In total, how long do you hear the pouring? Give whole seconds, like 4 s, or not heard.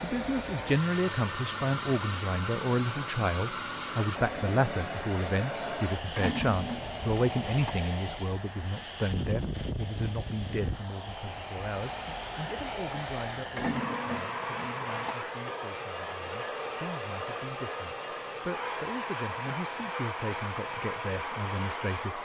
3 s.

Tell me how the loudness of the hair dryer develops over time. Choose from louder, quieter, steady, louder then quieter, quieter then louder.
steady.